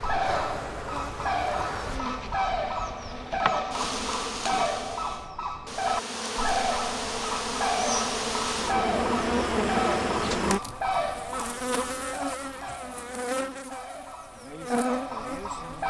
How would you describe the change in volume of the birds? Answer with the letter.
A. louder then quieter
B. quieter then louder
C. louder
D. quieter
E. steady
D.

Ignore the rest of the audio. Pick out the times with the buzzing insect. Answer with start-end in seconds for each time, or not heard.
0.0-15.8.